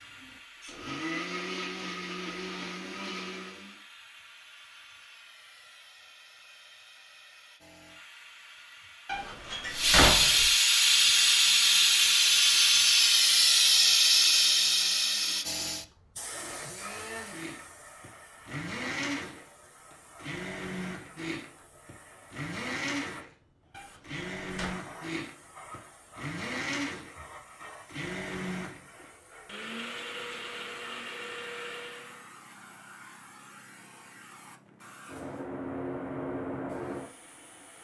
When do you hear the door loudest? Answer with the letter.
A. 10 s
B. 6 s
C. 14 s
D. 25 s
A.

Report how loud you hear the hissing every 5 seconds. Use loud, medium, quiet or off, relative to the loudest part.
quiet, quiet, loud, quiet, quiet, quiet, quiet, quiet.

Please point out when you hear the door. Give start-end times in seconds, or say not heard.
9.1-10.5, 23.7-24.8.